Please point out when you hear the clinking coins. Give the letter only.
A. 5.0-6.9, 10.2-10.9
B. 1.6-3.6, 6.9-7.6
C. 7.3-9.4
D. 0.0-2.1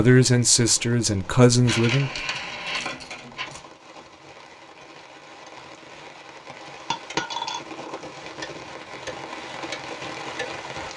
B.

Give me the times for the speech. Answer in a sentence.
You can hear the speech from 0.0 to 2.1 s.